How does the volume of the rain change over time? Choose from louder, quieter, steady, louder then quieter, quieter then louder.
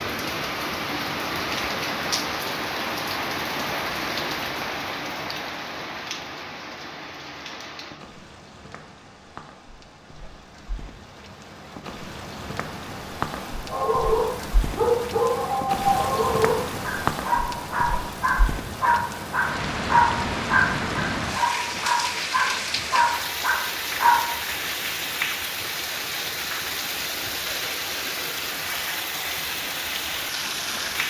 quieter then louder.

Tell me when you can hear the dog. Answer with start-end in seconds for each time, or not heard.
13.7-24.2.